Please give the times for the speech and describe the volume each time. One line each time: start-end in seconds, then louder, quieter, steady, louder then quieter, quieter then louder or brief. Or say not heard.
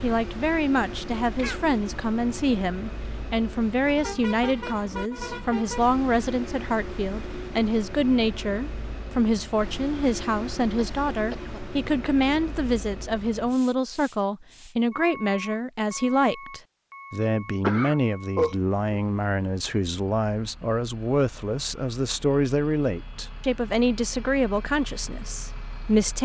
0.0-26.2 steady.